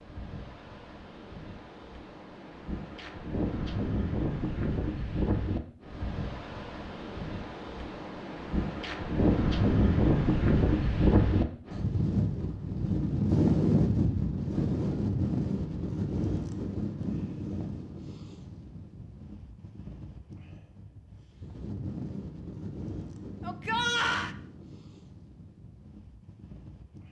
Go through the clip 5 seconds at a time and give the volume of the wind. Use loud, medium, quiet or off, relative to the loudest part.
medium, medium, loud, medium, quiet, quiet.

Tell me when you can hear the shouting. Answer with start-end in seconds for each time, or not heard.
23.4-24.4.